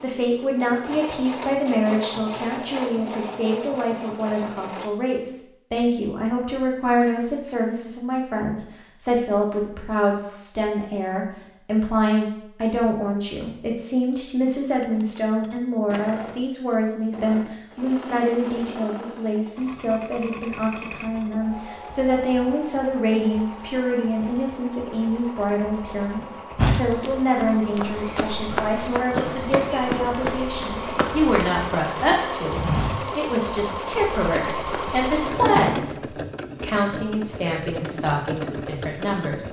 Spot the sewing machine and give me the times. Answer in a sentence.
You can hear the sewing machine from 0.0 to 4.9 s and from 15.8 to 39.4 s.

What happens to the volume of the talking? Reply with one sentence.
The loudness of the talking stays about the same.